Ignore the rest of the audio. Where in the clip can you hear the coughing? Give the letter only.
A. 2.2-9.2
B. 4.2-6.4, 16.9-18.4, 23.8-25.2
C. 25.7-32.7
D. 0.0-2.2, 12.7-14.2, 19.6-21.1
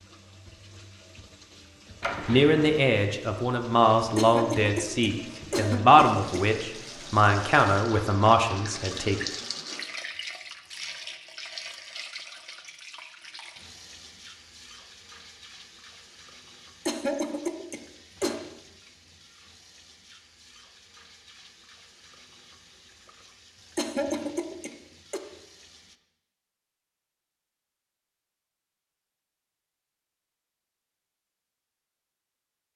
B.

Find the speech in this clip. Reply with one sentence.
The speech can be heard from 2.2 to 9.2 s.